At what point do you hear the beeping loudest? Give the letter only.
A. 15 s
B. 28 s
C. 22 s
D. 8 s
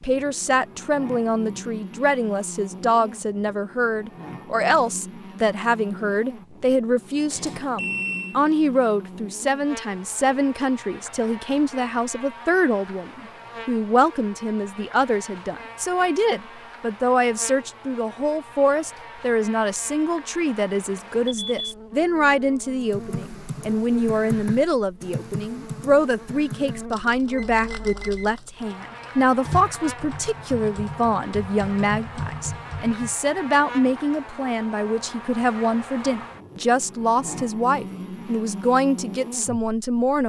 D.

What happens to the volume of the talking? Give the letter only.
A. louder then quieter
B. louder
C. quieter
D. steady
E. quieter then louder
D.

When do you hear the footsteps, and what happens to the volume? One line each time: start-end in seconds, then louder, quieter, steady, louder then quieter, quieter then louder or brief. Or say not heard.
not heard.